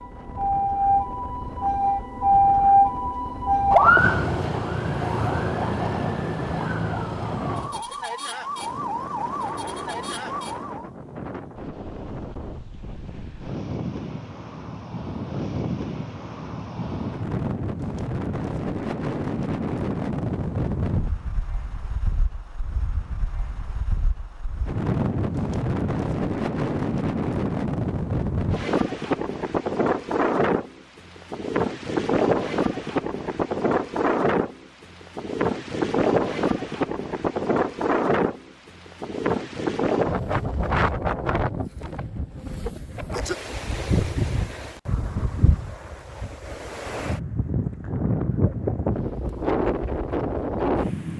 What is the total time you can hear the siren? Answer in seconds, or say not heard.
11 s.